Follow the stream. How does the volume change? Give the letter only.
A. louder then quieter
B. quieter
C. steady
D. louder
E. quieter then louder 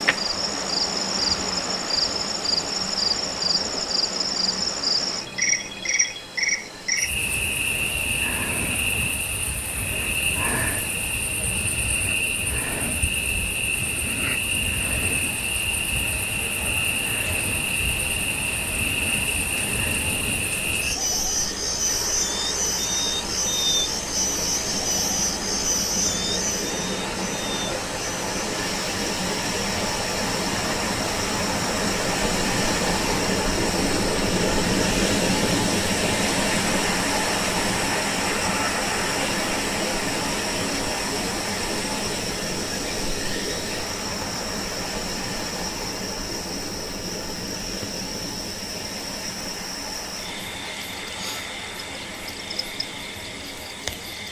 A.